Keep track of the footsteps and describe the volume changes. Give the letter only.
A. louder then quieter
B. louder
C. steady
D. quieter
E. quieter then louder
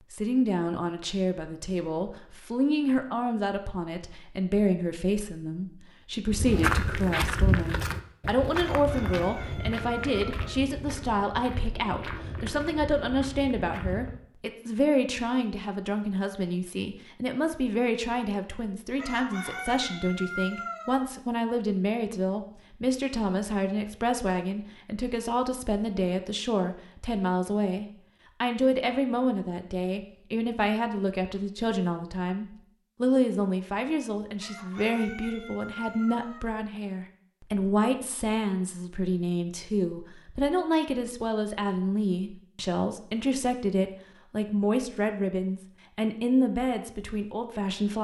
D.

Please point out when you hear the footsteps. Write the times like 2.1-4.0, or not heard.
6.2-14.2.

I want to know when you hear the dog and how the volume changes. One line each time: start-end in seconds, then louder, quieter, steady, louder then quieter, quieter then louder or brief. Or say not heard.
not heard.